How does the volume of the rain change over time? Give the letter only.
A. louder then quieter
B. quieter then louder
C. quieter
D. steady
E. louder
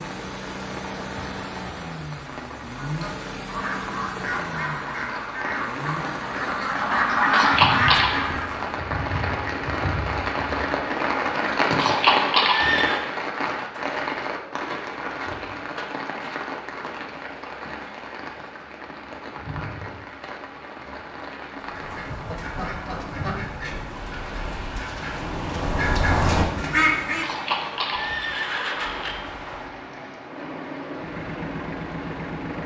A.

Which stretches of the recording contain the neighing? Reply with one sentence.
You can hear the neighing from 7.3 to 8.2 s, from 11.8 to 13.0 s and from 27.2 to 29.2 s.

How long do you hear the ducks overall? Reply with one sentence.
The ducks can be heard for 12 seconds in total.